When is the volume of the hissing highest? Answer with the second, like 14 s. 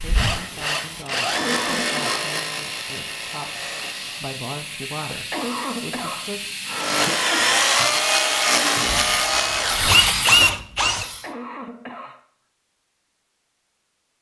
10 s.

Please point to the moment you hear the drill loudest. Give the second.
10 s.